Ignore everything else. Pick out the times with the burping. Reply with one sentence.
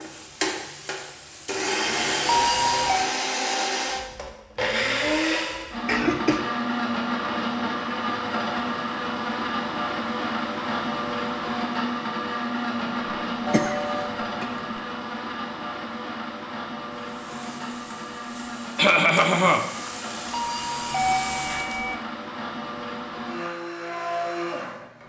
The burping can't be heard in this clip.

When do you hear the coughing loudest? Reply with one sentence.
The loudest moment of the coughing is at 19 seconds.